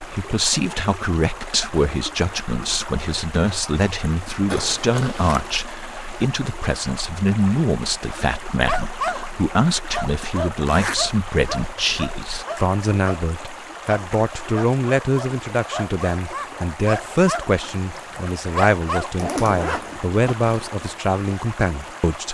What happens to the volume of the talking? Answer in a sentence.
The volume of the talking stays about the same.